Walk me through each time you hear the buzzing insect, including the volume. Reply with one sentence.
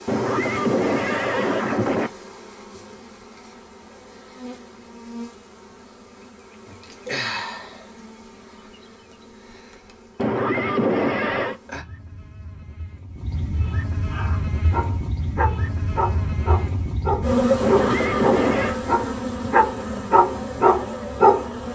You can hear the buzzing insect from 0.0 to 21.7 s, getting quieter then louder.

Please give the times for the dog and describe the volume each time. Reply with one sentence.
You can hear the dog from 14.1 to 21.4 s, getting louder.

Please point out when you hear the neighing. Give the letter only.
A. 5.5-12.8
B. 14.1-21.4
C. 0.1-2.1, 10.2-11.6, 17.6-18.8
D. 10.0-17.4
C.